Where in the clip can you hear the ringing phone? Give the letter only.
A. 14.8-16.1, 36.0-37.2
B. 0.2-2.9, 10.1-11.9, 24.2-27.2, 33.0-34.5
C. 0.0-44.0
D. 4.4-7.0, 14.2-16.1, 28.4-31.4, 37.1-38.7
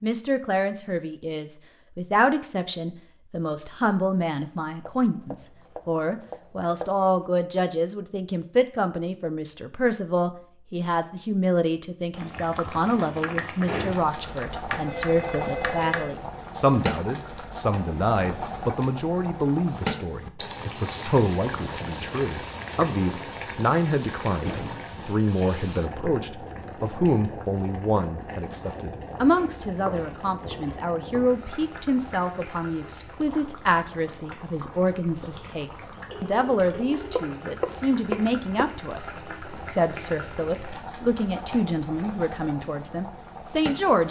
A.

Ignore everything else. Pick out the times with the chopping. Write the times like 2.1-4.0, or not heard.
4.4-7.0, 14.2-16.1, 28.4-31.4, 37.1-38.7.